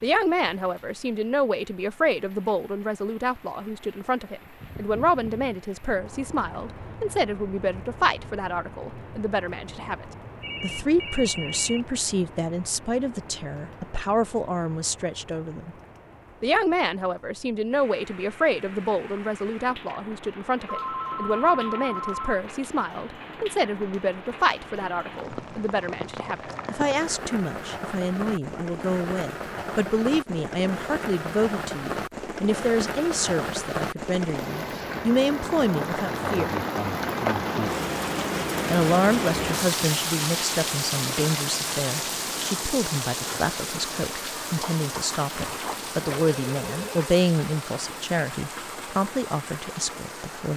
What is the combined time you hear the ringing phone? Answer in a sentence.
The ringing phone can be heard for 5 seconds in total.